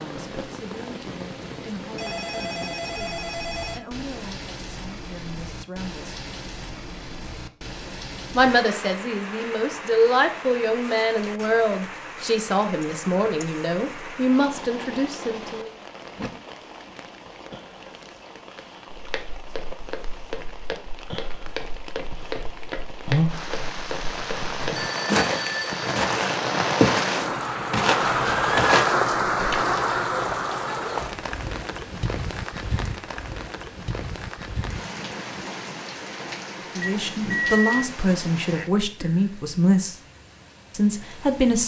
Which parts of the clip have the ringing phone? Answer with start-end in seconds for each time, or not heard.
1.9-3.9, 24.7-25.9, 36.8-37.9.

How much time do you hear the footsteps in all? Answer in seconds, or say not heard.
11 s.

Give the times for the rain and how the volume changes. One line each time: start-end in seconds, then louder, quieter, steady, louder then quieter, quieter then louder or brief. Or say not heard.
0.0-41.6 louder then quieter.